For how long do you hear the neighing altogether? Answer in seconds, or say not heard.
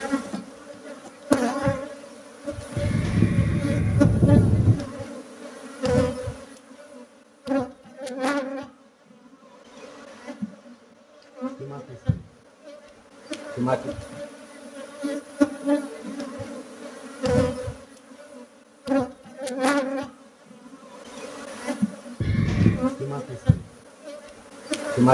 3 s.